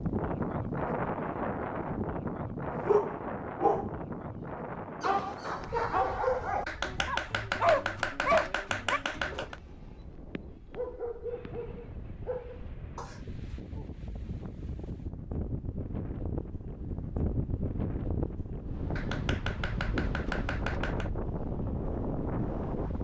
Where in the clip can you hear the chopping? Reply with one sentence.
The chopping can be heard from 6.7 to 9.6 s and from 18.9 to 21.1 s.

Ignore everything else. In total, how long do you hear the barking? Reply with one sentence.
You can hear the barking for 11 seconds altogether.